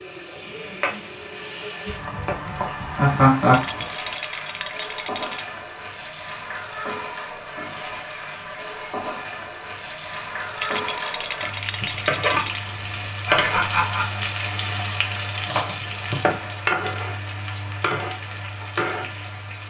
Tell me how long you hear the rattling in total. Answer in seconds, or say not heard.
4 s.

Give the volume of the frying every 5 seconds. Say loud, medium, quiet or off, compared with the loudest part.
medium, medium, loud, loud.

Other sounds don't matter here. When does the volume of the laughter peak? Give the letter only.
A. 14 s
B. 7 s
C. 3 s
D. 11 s
C.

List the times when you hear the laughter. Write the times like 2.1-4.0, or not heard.
2.5-3.6, 13.2-14.2.